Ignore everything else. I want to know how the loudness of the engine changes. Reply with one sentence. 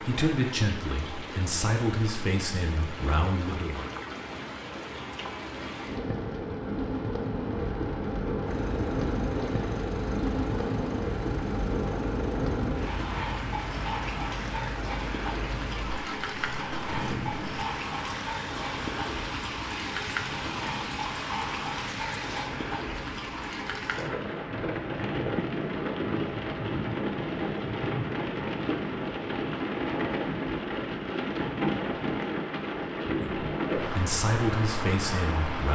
The loudness of the engine stays about the same.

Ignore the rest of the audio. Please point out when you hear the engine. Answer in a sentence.
The engine can be heard from 8.4 to 22.5 s.